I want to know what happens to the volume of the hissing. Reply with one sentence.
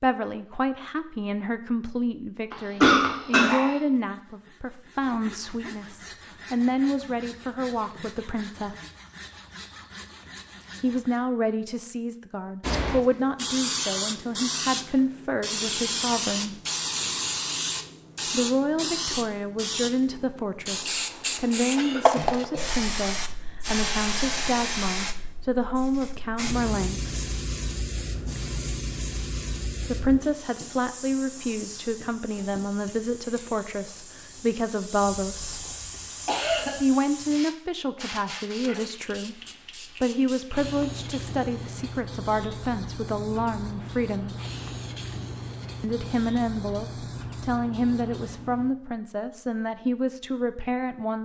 The loudness of the hissing goes down.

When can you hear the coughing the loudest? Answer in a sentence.
The volume of the coughing peaks at 3 seconds.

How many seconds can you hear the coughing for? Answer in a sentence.
You can hear the coughing for 4 seconds altogether.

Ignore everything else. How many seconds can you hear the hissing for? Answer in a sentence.
You can hear the hissing for 36 seconds altogether.